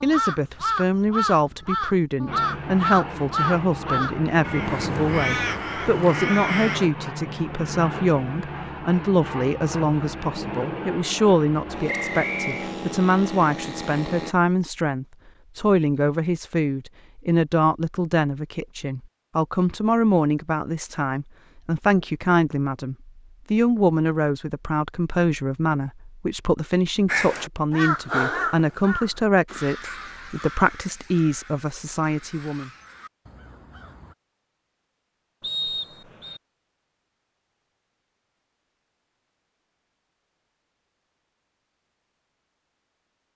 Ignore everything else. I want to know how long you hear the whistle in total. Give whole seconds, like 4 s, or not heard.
2 s.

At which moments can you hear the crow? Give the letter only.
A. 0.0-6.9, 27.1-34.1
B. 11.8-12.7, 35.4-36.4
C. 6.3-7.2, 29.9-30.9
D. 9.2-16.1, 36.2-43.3
A.